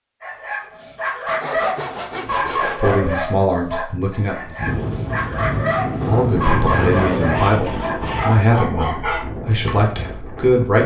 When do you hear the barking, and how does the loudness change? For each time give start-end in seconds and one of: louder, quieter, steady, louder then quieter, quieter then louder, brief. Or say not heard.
0.2-9.7 steady.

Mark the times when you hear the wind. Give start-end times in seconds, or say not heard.
4.5-10.6.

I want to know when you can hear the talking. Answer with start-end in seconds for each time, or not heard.
2.8-4.5, 6.0-10.8.